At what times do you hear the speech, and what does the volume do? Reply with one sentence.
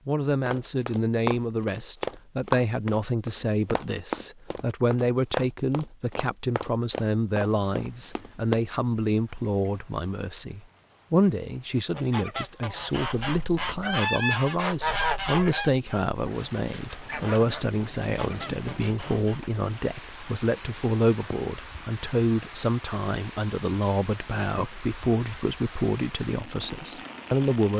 The speech can be heard from 0.1 to 27.7 s, at a steady volume.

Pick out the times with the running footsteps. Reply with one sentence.
You can hear the running footsteps from 0.5 to 8.6 s.